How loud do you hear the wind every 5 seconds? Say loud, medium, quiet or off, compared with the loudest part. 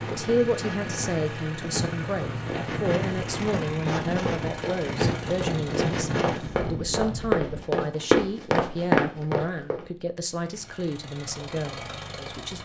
loud, loud, off.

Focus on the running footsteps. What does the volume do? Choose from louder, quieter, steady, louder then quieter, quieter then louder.
louder.